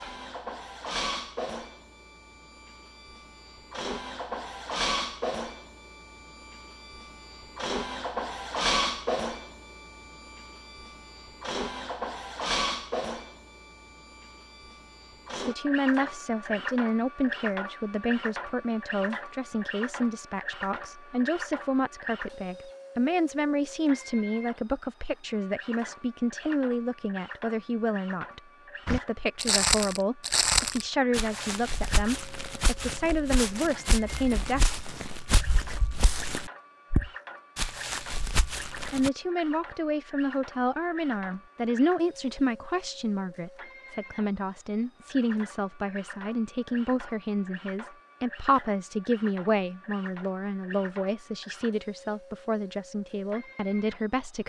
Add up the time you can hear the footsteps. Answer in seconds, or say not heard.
10 s.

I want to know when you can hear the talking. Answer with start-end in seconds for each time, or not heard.
15.3-34.6, 38.9-54.4.